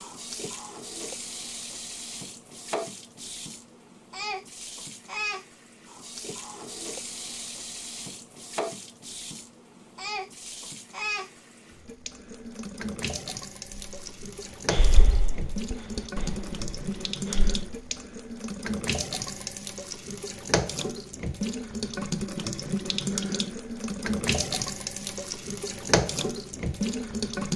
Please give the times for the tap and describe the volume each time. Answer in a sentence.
The tap can be heard from 0.0 to 27.5 s, getting louder.